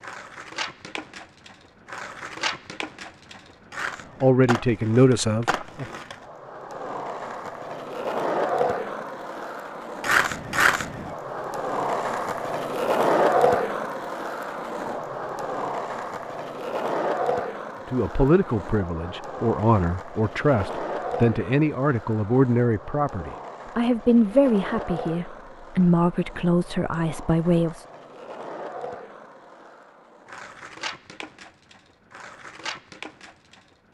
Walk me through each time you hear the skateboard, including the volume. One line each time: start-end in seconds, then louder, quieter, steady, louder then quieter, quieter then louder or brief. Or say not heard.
0.0-33.8 louder then quieter.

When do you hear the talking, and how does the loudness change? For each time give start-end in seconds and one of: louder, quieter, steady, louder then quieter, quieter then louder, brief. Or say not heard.
4.2-5.8 brief
17.9-27.9 steady.